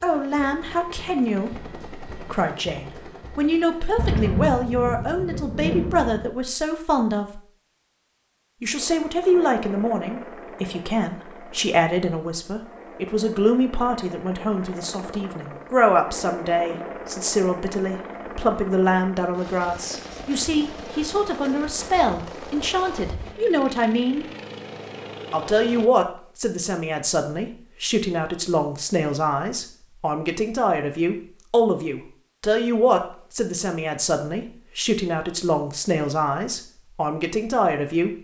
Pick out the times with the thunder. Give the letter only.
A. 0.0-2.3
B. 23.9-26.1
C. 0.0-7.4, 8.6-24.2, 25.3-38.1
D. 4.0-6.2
D.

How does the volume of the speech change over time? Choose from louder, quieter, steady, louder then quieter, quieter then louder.
steady.